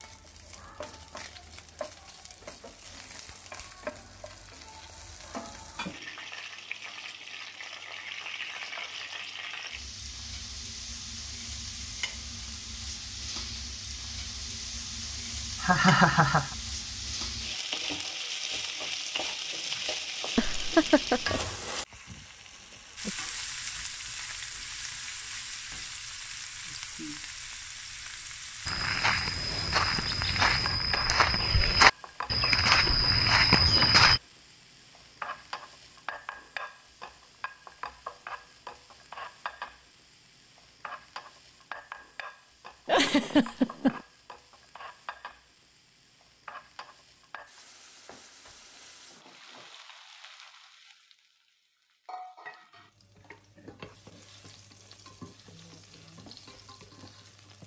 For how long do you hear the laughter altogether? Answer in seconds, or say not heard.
3 s.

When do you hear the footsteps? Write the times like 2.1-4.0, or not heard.
28.6-34.2.